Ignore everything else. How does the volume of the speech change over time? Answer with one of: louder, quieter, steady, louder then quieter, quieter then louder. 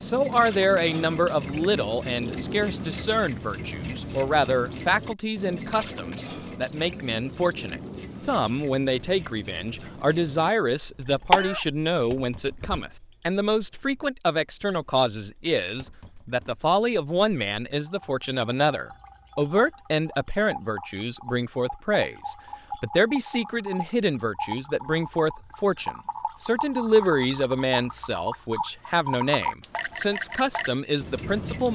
steady.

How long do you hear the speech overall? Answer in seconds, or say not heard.
32 s.